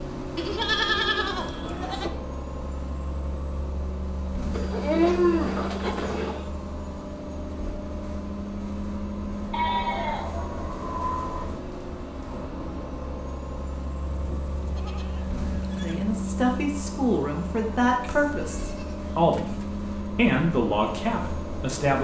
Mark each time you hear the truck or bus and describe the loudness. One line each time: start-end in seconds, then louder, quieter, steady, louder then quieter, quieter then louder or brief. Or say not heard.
0.0-22.0 steady.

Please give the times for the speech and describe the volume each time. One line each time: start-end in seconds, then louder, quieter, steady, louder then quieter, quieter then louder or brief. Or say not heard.
15.7-22.0 steady.